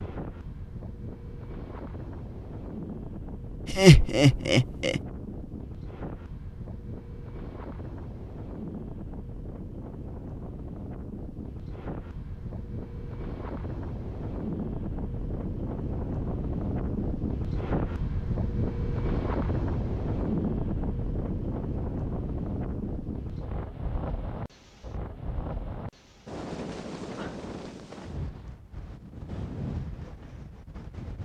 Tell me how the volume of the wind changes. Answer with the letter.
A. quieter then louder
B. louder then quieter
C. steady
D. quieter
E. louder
B.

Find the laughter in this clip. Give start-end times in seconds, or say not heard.
3.6-5.0.